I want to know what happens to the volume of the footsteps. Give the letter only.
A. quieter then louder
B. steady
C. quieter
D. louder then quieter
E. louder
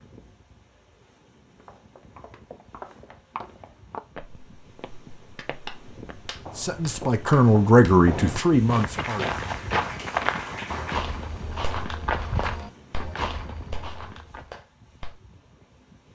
A.